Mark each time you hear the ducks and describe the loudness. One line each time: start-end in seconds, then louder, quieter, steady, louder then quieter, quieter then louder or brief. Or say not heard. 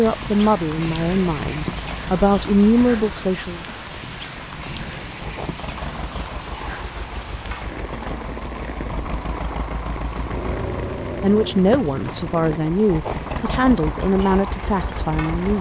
not heard.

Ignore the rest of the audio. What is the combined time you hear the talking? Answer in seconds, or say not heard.
8 s.